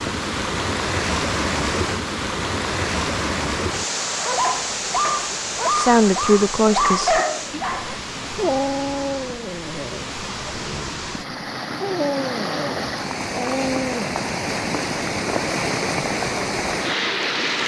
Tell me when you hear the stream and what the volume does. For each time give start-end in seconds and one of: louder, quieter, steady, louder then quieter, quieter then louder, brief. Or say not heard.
0.0-17.6 quieter then louder.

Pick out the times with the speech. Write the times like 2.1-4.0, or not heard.
5.7-7.2.